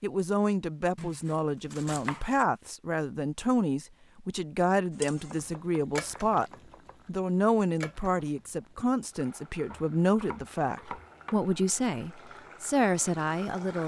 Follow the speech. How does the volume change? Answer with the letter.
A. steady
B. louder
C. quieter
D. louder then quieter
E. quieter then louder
A.